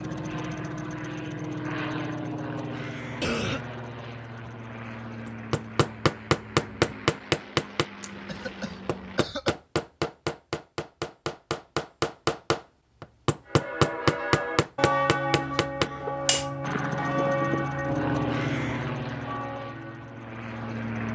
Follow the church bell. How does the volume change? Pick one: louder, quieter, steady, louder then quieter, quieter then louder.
quieter.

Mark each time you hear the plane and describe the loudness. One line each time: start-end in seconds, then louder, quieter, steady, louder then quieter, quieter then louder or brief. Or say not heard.
0.0-9.2 quieter
16.6-21.1 louder then quieter.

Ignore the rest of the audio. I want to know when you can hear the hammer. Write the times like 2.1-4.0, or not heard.
5.2-16.5.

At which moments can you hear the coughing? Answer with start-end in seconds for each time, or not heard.
3.2-3.6, 8.2-9.6, 15.3-16.3.